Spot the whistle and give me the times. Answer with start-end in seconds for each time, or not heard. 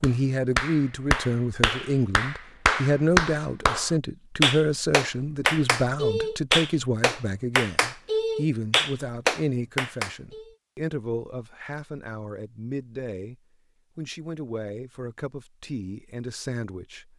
not heard.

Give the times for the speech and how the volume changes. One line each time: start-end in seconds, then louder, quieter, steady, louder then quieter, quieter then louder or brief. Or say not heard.
0.0-17.1 quieter.